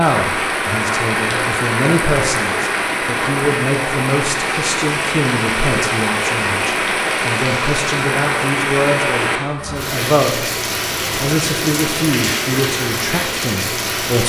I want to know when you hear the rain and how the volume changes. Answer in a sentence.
The rain can be heard from 0.0 to 14.2 s, at a steady volume.